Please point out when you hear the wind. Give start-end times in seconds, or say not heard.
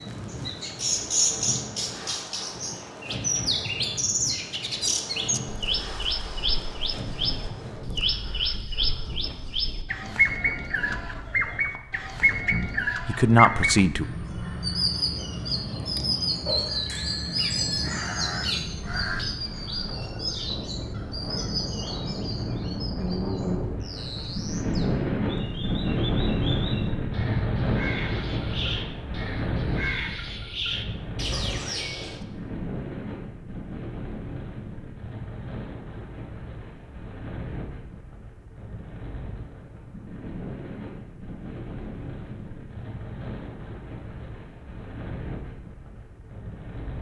0.0-46.9.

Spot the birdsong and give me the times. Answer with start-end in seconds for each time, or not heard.
0.0-32.2.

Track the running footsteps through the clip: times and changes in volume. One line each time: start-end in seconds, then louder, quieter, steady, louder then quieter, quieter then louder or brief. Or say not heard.
not heard.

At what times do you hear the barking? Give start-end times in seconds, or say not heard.
not heard.